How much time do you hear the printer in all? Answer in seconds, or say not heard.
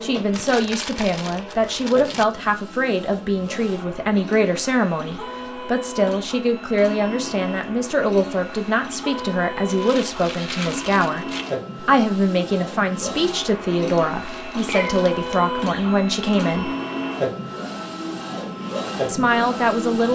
20 s.